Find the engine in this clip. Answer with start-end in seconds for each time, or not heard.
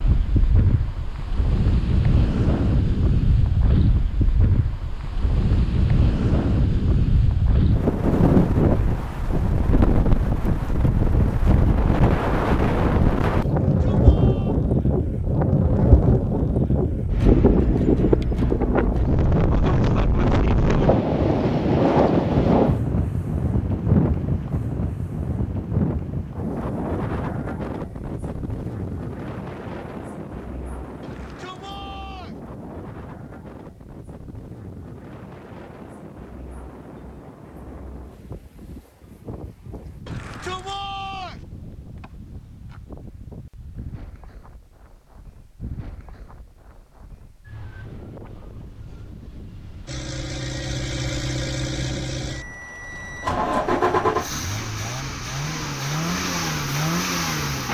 49.9-57.6.